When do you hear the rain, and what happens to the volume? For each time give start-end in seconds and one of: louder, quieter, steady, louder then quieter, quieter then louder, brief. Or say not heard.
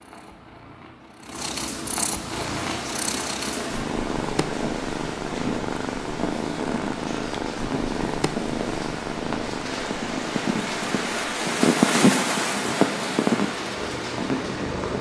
2.3-14.9 louder.